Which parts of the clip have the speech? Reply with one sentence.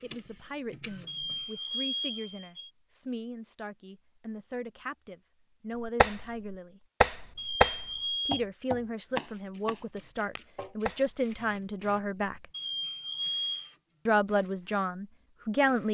The speech can be heard from 0.0 to 6.8 s, from 8.2 to 12.4 s and from 14.1 to 15.8 s.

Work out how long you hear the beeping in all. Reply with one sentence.
The beeping can be heard for 4 seconds in total.